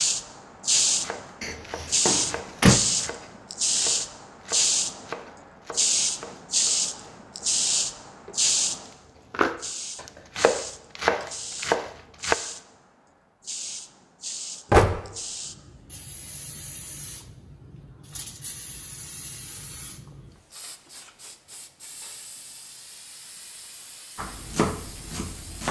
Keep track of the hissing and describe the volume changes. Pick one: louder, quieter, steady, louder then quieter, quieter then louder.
quieter.